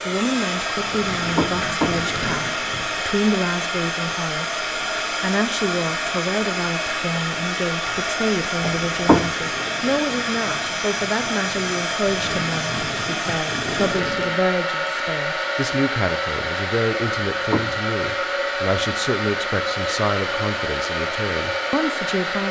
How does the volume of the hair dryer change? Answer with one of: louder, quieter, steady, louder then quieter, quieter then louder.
steady.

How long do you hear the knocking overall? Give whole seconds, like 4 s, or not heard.
3 s.